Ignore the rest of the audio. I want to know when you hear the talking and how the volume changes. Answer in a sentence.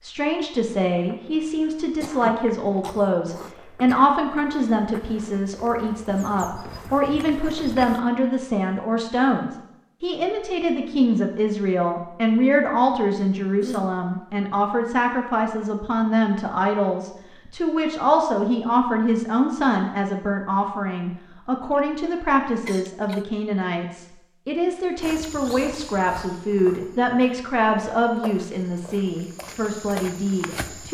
The talking can be heard from 0.0 to 30.9 s, at a steady volume.